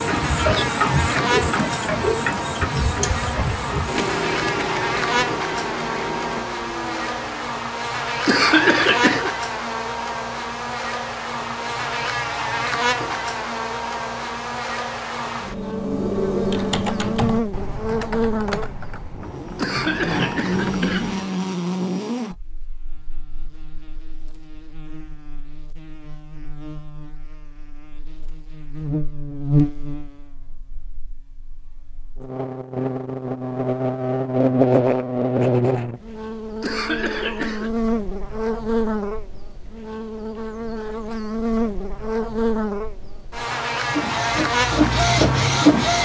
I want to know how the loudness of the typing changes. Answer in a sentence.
The loudness of the typing goes down.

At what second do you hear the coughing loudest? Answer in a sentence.
The loudest moment of the coughing is at 9 seconds.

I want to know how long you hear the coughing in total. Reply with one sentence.
You can hear the coughing for 4 seconds altogether.